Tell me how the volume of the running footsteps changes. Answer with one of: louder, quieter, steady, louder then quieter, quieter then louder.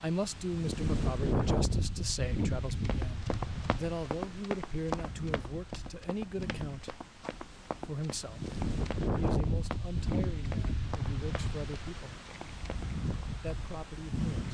quieter.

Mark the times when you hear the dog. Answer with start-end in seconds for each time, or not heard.
not heard.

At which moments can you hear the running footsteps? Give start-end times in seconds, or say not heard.
2.9-13.3.